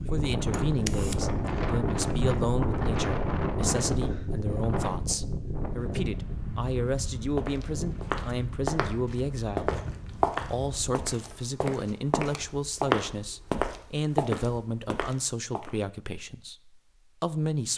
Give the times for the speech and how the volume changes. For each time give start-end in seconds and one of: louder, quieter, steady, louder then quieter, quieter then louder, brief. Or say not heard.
0.1-17.7 steady.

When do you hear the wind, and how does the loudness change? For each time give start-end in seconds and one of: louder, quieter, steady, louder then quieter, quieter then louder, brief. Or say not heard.
0.0-11.1 quieter.